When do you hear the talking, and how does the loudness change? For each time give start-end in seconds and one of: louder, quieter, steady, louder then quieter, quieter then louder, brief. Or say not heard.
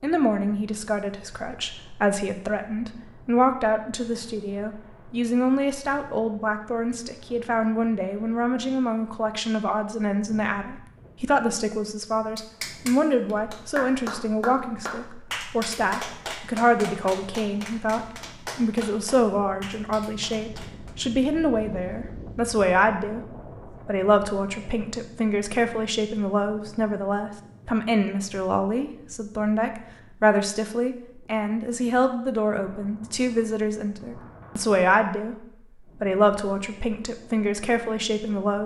0.0-38.6 steady.